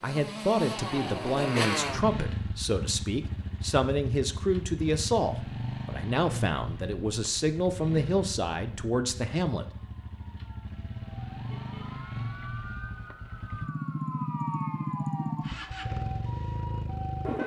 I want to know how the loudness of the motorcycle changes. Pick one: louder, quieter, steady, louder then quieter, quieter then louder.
quieter then louder.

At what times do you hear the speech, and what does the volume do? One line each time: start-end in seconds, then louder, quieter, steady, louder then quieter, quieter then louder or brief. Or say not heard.
0.0-9.7 steady.